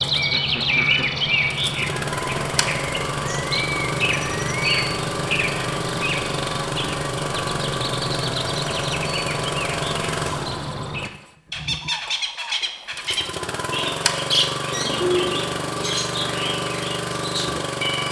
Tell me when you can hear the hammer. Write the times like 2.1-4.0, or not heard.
not heard.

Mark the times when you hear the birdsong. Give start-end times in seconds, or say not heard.
0.0-18.0.